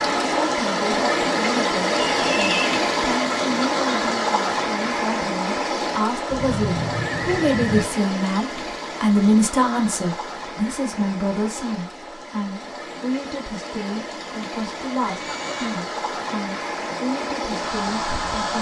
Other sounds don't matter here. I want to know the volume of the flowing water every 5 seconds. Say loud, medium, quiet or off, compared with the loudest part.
loud, medium, quiet, medium.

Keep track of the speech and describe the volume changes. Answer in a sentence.
The loudness of the speech goes up, then down.